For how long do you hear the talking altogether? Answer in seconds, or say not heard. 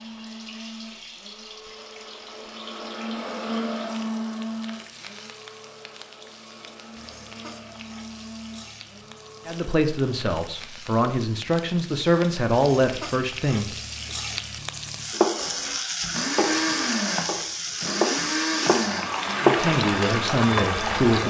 6 s.